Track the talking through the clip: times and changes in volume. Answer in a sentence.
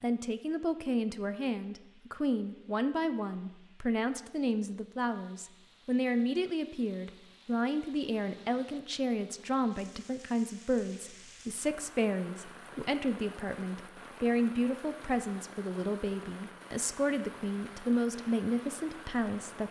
You can hear the talking from 0.0 to 19.6 s, at a steady volume.